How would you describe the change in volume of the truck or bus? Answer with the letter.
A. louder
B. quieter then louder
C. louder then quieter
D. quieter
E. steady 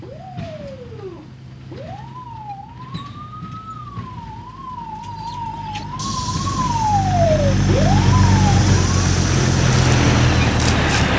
A.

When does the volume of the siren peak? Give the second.
7 s.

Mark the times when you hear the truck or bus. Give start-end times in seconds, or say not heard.
0.0-11.1.